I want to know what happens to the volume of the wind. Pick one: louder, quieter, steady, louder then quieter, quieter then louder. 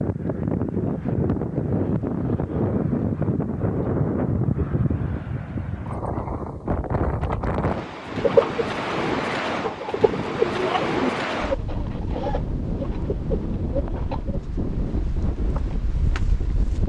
quieter.